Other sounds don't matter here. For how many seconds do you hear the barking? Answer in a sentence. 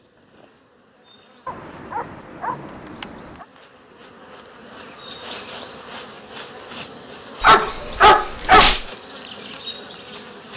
You can hear the barking for 3 seconds altogether.